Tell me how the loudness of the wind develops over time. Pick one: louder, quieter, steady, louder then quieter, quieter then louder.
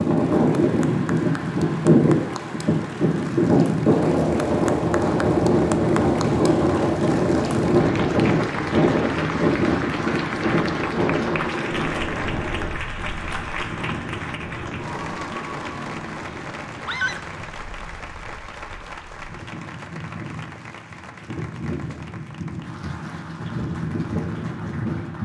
quieter then louder.